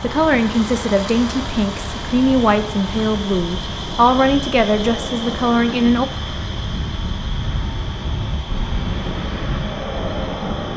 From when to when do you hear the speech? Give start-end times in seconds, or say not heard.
0.0-6.0.